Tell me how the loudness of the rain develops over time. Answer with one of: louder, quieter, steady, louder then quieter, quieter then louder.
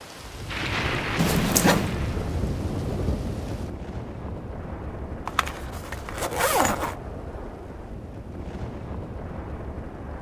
quieter.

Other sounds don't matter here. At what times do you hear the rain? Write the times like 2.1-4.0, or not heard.
0.0-10.1.